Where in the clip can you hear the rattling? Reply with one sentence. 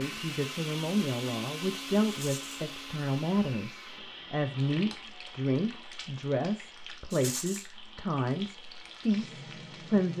The rattling can be heard from 2.0 to 2.5 s and from 7.1 to 7.7 s.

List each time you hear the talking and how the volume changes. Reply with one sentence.
You can hear the talking from 0.0 to 10.1 s, at a steady volume.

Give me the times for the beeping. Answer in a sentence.
You can't hear the beeping here.